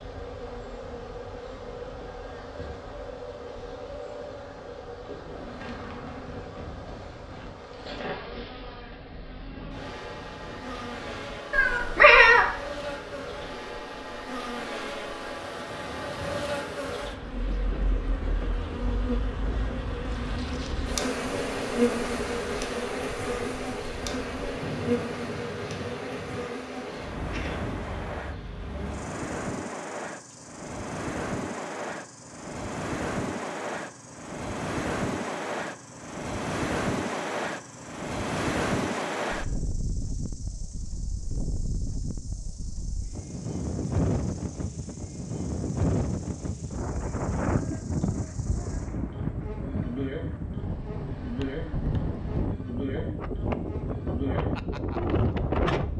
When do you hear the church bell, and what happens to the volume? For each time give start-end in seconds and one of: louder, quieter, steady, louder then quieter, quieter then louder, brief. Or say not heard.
not heard.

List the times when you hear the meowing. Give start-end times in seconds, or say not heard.
11.5-12.4.